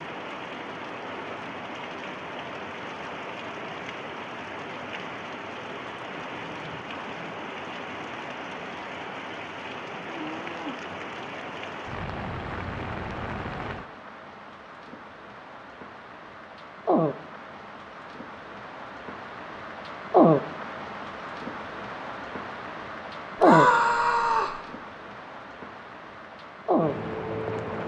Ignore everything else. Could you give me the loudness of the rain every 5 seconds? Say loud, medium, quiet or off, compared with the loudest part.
medium, medium, medium, medium, loud, medium.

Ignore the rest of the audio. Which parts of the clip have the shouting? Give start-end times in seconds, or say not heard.
23.4-24.6.